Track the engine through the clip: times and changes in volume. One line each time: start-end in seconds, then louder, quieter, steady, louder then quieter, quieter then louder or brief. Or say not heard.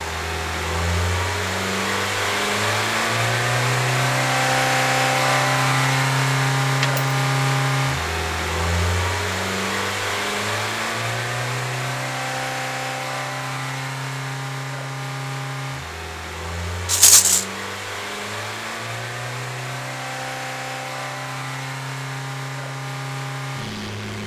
0.0-24.2 quieter.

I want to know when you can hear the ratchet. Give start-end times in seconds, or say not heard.
not heard.